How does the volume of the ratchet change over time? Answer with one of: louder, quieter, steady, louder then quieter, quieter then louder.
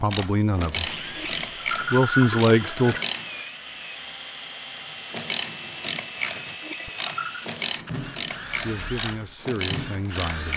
steady.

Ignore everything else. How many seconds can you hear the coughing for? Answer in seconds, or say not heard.
3 s.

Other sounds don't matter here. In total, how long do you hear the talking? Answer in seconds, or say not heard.
4 s.